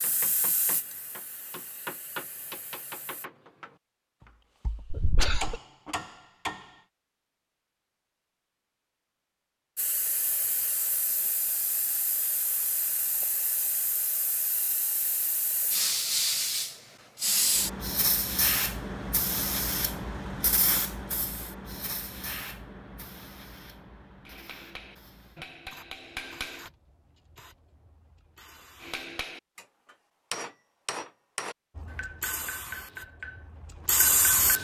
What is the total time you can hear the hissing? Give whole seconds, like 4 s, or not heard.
25 s.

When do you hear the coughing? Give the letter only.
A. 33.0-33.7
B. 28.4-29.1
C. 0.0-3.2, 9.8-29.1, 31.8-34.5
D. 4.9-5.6
D.